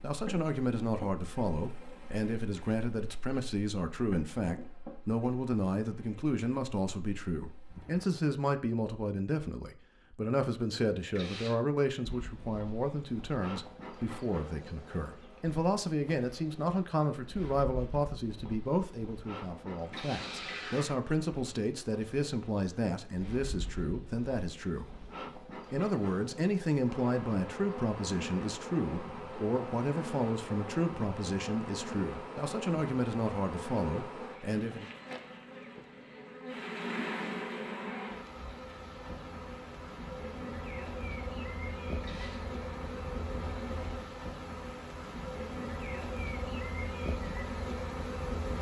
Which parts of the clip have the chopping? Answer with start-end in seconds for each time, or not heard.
not heard.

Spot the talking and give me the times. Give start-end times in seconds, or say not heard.
0.0-24.9, 25.7-34.9.